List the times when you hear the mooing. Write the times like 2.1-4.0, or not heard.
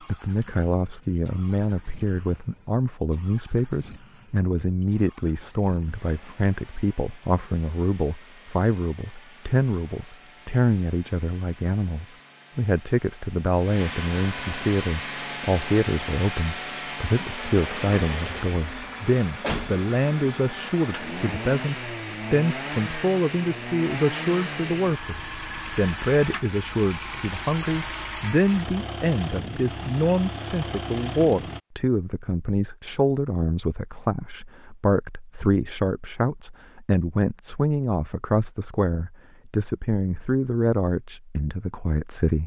not heard.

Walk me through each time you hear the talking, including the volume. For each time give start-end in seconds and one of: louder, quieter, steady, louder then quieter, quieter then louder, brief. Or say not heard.
0.1-42.4 steady.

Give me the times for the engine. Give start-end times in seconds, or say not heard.
0.0-31.6.